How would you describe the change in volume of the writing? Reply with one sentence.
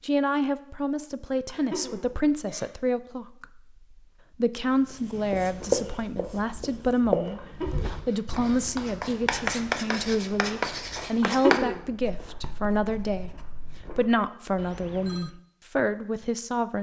The loudness of the writing goes down.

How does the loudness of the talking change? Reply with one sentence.
The volume of the talking stays about the same.